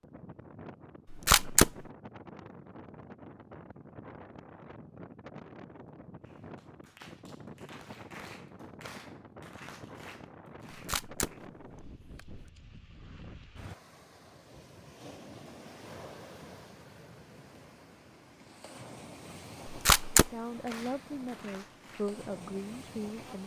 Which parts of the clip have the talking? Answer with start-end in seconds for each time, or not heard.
20.1-23.4.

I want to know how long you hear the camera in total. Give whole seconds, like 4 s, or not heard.
3 s.